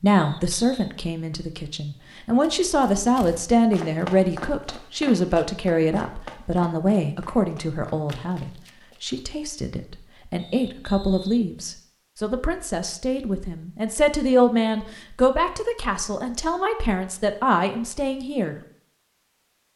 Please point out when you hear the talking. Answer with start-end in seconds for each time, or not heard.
0.0-18.6.